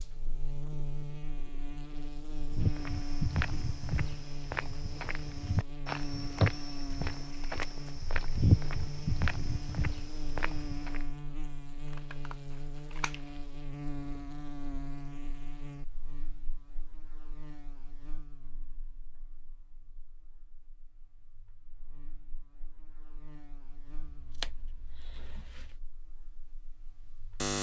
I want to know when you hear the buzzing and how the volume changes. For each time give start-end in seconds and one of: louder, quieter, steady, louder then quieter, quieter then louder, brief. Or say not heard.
0.0-27.5 quieter.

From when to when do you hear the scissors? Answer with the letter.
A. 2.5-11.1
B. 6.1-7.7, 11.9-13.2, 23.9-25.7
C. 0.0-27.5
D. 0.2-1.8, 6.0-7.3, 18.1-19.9
B.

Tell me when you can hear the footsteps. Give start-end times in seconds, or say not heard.
2.5-11.1.